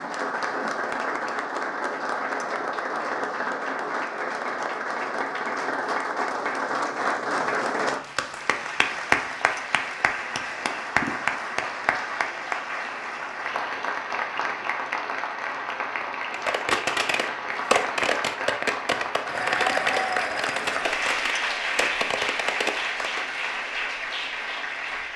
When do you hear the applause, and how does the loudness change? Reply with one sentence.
You can hear the applause from 0.0 to 25.1 s, at a steady volume.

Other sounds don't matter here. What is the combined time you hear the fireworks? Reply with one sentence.
The fireworks can be heard for 7 seconds in total.